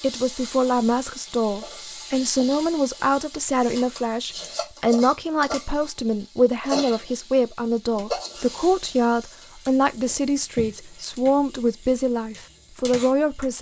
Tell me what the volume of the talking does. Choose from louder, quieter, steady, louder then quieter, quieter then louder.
steady.